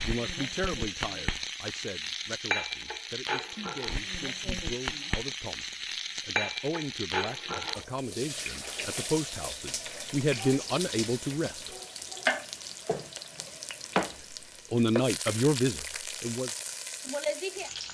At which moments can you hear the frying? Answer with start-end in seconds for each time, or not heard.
0.0-17.8.